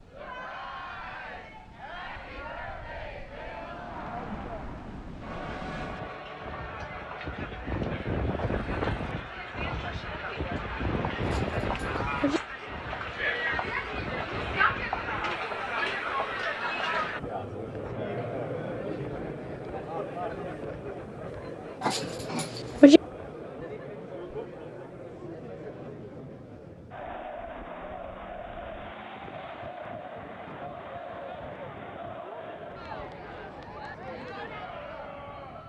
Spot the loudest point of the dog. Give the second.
23 s.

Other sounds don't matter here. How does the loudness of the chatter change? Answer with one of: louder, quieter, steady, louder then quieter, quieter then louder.
louder then quieter.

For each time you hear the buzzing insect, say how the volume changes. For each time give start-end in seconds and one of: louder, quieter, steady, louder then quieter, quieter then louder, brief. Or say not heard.
not heard.